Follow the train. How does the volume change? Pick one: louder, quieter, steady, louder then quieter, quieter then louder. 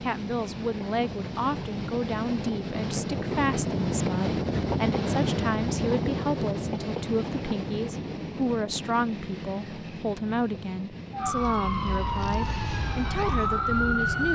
louder then quieter.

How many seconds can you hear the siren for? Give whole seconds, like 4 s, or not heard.
3 s.